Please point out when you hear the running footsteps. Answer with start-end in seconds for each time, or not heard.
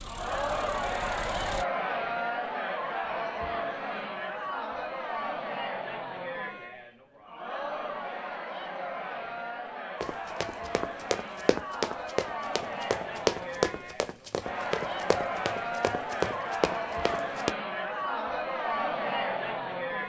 10.0-17.6.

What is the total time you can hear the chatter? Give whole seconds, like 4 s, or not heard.
20 s.